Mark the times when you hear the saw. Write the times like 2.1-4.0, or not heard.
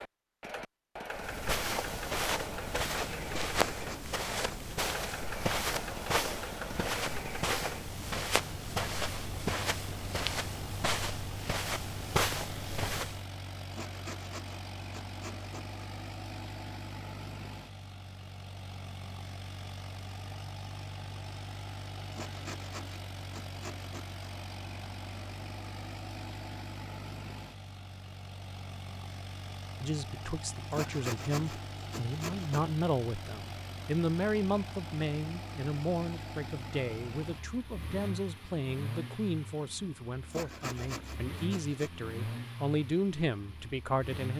3.5-4.8, 13.7-15.8, 22.1-24.2, 30.7-32.6, 40.3-41.9.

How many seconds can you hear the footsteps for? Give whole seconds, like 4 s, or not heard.
12 s.